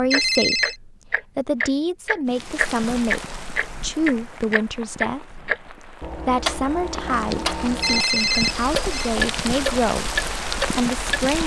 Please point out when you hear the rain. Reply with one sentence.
You can hear the rain from 2.2 to 11.4 s.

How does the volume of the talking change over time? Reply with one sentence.
The loudness of the talking stays about the same.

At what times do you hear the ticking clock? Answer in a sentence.
You can hear the ticking clock from 0.1 to 11.3 s.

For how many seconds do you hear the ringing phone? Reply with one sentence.
The ringing phone can be heard for 2 seconds in total.